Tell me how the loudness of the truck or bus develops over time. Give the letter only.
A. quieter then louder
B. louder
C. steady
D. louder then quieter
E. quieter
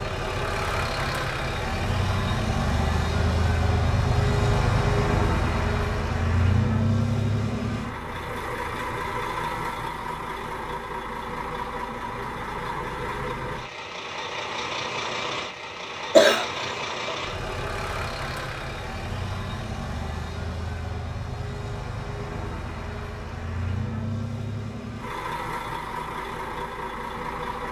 E.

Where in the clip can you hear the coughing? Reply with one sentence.
The coughing can be heard from 16.1 to 17.1 s.